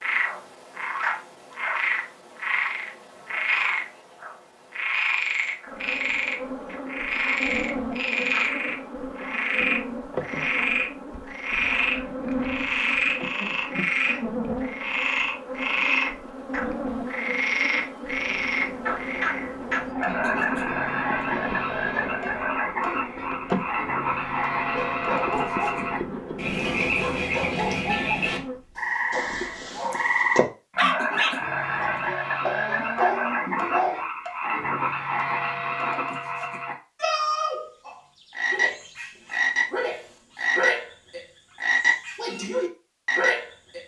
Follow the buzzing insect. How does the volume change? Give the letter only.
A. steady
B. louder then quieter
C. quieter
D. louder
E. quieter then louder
A.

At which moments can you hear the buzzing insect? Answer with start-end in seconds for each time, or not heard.
5.7-28.6.